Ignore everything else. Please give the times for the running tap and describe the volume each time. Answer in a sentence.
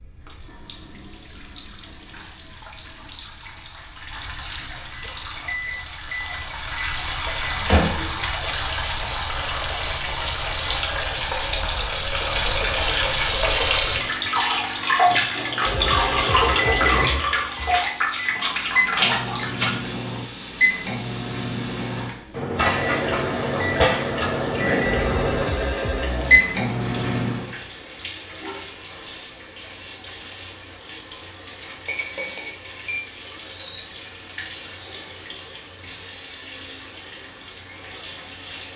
The running tap can be heard from 0.0 to 38.7 s, getting louder then quieter.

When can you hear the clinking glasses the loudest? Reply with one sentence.
The loudest moment of the clinking glasses is at 17 seconds.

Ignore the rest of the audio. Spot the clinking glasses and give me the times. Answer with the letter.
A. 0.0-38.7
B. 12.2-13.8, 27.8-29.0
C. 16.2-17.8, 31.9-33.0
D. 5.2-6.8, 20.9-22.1
C.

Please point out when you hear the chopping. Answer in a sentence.
You can't hear the chopping here.